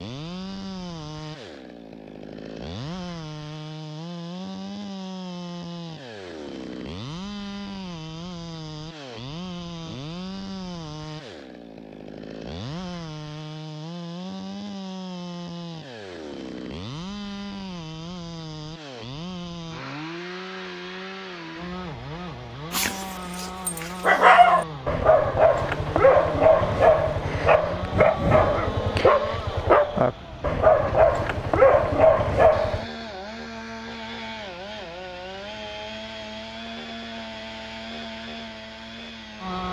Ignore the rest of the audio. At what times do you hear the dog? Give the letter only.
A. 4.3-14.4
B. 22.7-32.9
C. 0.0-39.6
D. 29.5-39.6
B.